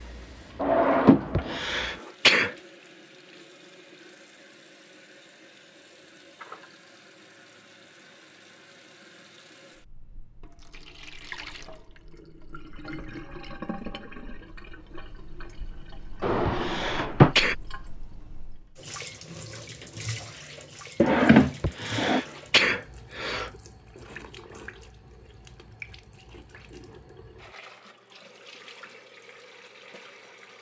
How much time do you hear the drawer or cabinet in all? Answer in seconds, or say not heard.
3 s.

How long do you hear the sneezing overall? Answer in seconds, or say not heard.
4 s.